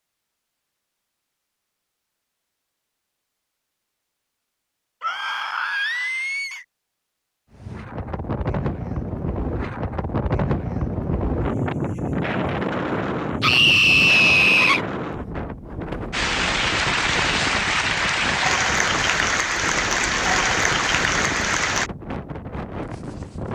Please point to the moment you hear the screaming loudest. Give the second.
14 s.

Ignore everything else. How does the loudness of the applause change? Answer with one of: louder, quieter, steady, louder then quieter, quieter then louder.
steady.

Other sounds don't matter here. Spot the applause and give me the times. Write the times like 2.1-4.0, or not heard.
16.1-21.9.